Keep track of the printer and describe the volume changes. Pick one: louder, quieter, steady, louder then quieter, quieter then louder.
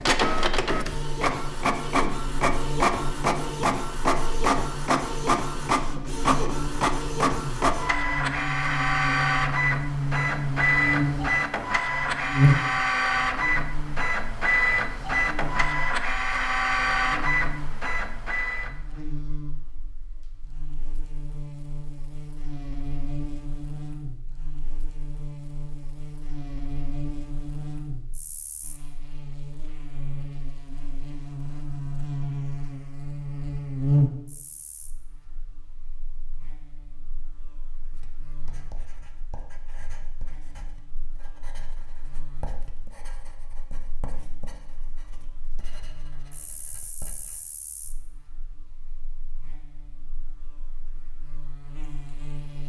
steady.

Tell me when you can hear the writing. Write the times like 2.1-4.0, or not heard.
37.9-47.4.